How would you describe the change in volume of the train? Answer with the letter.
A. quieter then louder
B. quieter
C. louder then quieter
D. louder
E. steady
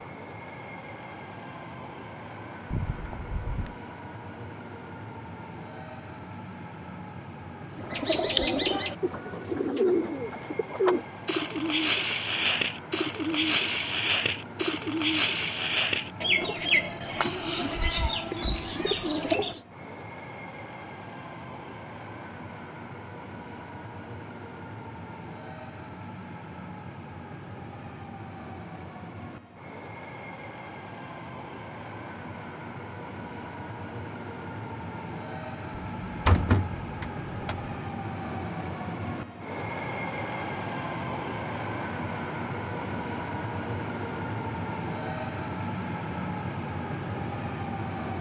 D.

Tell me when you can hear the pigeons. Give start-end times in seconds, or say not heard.
7.7-19.6.